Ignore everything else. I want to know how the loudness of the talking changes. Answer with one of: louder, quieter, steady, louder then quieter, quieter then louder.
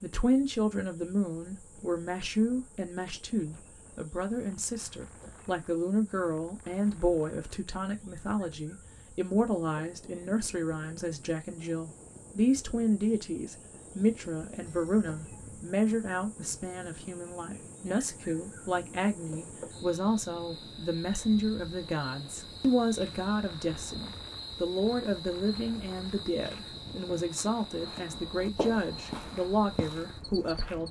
steady.